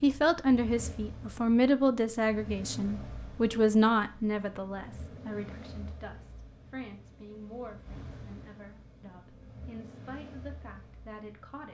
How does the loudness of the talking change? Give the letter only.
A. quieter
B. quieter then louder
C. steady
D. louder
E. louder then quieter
A.